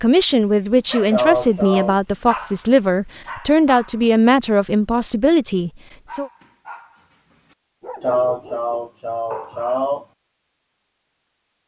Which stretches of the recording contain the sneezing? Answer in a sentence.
The sneezing can be heard from 1.1 to 1.9 s and from 8.0 to 10.1 s.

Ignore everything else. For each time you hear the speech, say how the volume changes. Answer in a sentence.
The speech can be heard from 0.0 to 6.3 s, at a steady volume.